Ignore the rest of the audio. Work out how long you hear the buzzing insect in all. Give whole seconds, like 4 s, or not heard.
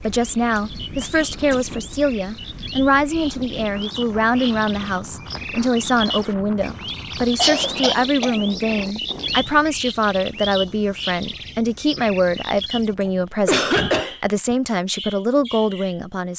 not heard.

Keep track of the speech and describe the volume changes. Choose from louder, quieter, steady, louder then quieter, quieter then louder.
steady.